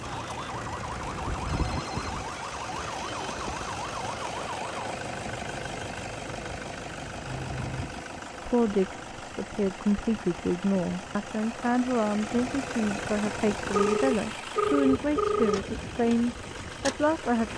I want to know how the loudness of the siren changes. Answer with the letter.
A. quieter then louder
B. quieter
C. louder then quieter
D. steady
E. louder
D.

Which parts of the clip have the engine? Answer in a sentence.
You can hear the engine from 0.0 to 17.5 s.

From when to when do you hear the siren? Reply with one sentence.
You can hear the siren from 0.0 to 5.0 s.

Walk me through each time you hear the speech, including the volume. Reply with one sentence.
The speech can be heard from 8.4 to 17.5 s, at a steady volume.